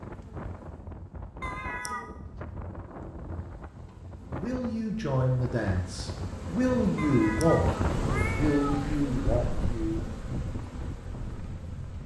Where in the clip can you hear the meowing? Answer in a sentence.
The meowing can be heard from 1.4 to 2.0 s and from 7.0 to 8.8 s.